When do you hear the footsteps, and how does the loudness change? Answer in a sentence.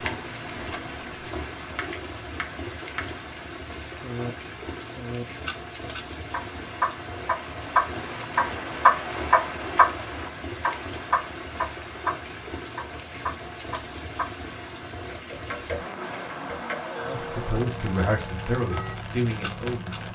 The footsteps can't be heard in this clip.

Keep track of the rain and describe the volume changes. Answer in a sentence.
The volume of the rain stays about the same.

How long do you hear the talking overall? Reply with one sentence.
The talking can be heard for 3 seconds in total.